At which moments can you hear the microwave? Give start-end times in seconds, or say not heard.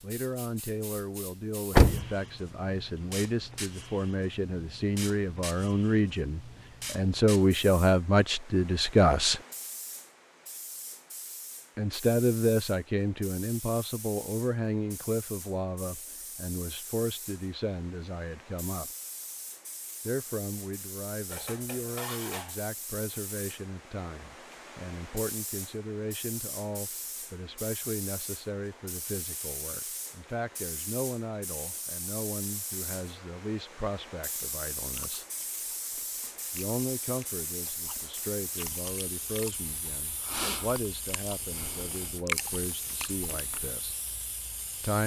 not heard.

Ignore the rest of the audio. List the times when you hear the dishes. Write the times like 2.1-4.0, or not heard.
21.2-22.6.